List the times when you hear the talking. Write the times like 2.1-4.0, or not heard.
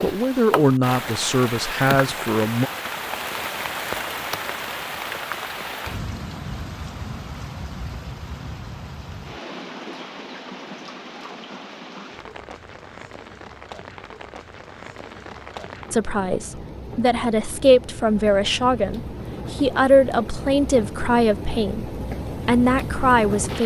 0.0-2.7, 15.9-23.6.